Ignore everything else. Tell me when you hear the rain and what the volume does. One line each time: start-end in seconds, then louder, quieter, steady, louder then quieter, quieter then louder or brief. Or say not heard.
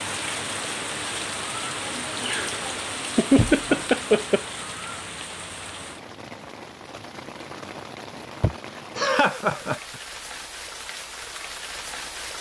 0.0-12.3 quieter.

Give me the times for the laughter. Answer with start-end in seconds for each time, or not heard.
2.2-4.5, 8.4-9.8.